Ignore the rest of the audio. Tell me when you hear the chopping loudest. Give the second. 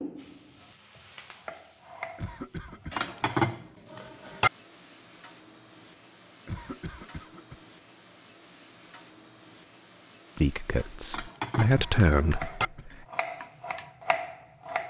14 s.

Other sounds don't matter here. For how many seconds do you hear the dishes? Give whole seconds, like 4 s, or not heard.
3 s.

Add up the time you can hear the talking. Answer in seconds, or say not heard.
3 s.